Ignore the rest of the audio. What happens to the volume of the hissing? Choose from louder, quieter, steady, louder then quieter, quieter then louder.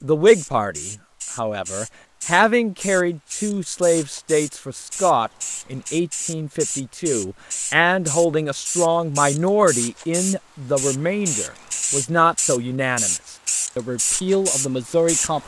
louder.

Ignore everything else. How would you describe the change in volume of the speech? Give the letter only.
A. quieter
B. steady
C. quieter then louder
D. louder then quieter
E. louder
B.